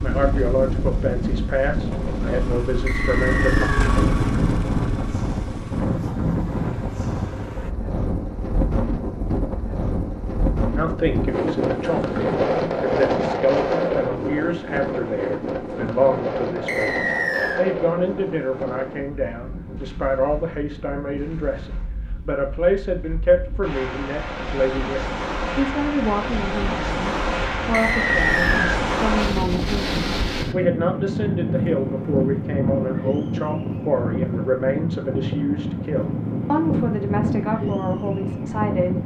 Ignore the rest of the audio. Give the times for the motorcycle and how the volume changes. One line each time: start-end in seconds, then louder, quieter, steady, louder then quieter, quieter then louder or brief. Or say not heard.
0.0-7.8 louder then quieter.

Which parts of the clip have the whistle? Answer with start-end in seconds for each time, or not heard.
2.9-3.9, 16.6-17.6, 27.7-28.8.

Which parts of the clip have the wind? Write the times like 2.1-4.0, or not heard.
0.0-39.0.